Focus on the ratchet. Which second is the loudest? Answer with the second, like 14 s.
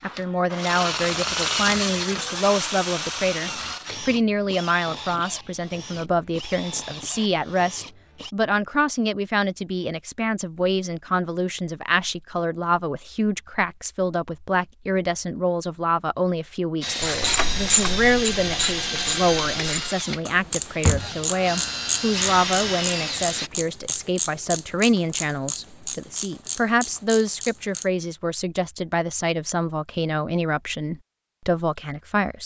18 s.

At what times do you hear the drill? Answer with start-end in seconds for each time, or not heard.
0.0-8.3, 16.8-23.5.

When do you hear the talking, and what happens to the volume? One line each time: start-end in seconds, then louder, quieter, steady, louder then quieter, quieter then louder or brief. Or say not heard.
0.0-32.4 steady.